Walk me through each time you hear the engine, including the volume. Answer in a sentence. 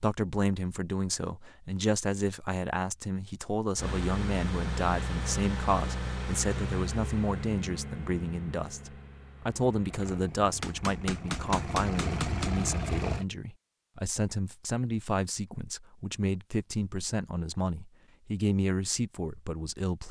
You can hear the engine from 3.8 to 13.2 s, getting quieter then louder.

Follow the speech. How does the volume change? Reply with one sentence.
The volume of the speech stays about the same.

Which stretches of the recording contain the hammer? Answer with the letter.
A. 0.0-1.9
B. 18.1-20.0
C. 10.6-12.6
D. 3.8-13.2
C.